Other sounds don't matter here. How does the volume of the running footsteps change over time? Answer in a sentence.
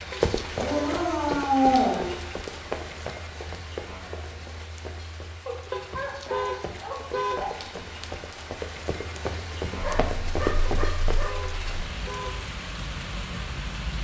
The volume of the running footsteps goes down, then up.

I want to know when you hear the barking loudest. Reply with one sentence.
The volume of the barking peaks at 2 seconds.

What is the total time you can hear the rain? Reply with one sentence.
You can hear the rain for 14 seconds altogether.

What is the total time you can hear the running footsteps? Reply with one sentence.
You can hear the running footsteps for 11 seconds altogether.